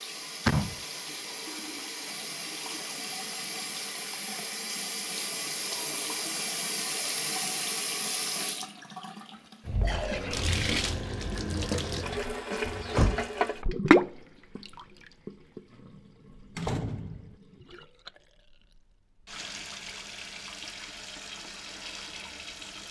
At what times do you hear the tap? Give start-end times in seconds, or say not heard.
0.0-22.8.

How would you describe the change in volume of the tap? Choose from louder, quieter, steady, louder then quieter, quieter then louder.
louder then quieter.